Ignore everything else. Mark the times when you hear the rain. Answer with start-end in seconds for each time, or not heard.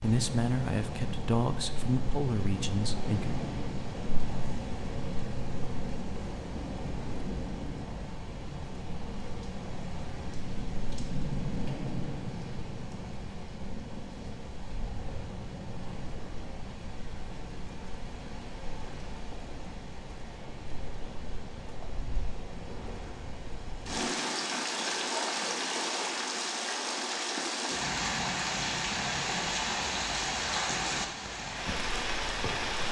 0.0-32.8.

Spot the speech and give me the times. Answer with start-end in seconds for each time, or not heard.
0.0-3.5.